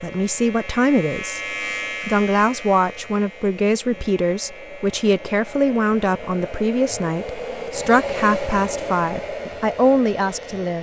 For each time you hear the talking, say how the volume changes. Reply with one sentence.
The talking can be heard briefly from 0.0 to 1.4 s; and from 2.0 to 10.7 s, at a steady volume.